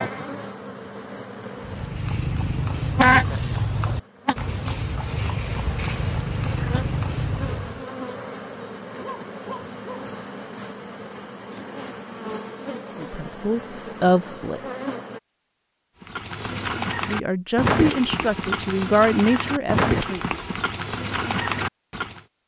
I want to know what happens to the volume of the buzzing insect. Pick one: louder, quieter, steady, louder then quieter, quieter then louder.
quieter.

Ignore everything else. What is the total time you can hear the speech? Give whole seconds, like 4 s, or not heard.
5 s.